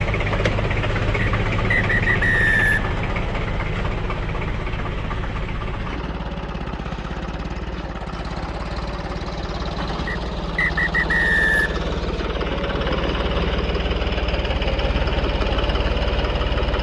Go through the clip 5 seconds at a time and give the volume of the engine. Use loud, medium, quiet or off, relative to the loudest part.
loud, medium, loud, loud.